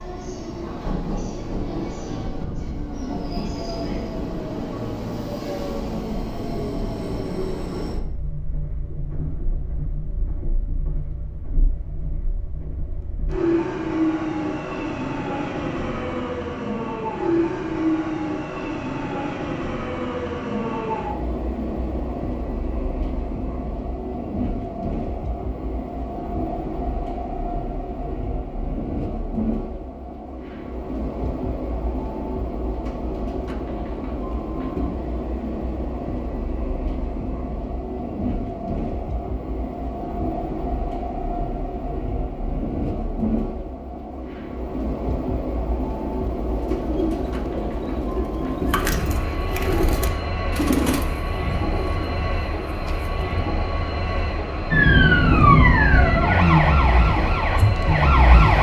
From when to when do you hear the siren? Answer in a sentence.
The siren can be heard from 54.7 to 58.5 s.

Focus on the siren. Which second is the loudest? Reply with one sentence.
The volume of the siren peaks at 55 seconds.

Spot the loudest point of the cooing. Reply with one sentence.
The loudest moment of the cooing is at 51 seconds.